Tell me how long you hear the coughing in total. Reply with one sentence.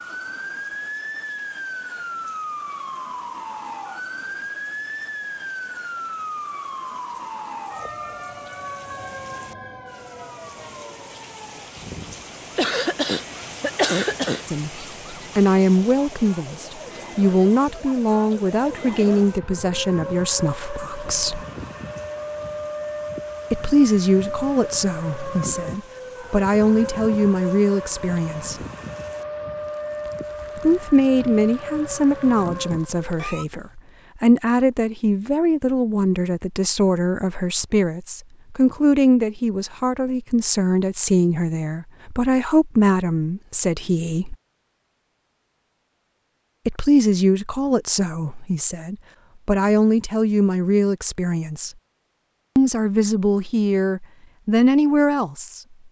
The coughing can be heard for 2 seconds in total.